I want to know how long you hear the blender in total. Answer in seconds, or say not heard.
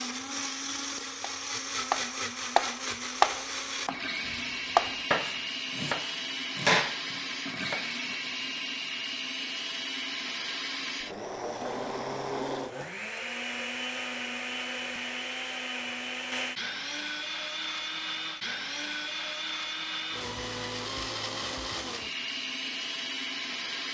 24 s.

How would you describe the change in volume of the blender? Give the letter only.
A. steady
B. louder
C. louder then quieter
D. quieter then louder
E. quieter
A.